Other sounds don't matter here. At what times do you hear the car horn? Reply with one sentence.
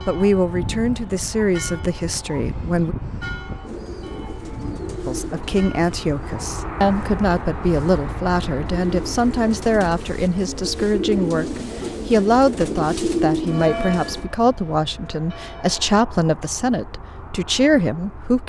The car horn can't be heard in this clip.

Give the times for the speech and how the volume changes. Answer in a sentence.
The speech can be heard briefly from 0.1 to 3.0 s; and from 5.0 to 18.4 s, at a steady volume.